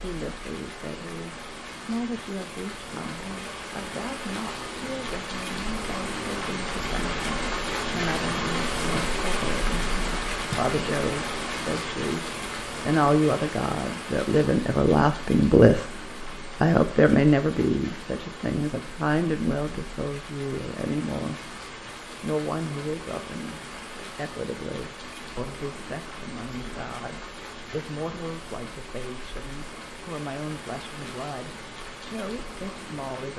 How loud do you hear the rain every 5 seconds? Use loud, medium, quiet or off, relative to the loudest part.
medium, loud, loud, medium, medium, medium, medium.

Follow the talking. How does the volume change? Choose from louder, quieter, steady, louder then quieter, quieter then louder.
louder then quieter.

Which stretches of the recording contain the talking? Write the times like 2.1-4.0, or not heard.
0.0-21.6, 22.2-33.3.